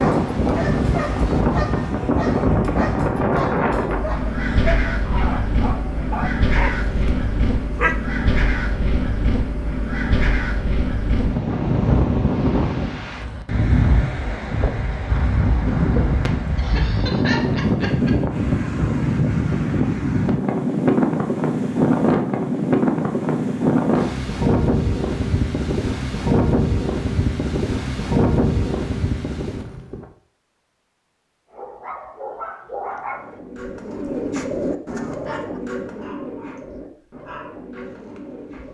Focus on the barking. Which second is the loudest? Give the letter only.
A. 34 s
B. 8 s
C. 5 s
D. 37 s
B.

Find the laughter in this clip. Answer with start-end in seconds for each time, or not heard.
16.6-18.1.